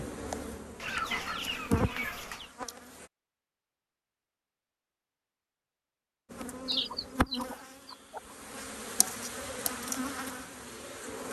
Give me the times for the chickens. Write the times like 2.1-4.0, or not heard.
0.8-2.5, 6.7-8.3.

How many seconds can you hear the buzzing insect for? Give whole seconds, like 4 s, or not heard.
8 s.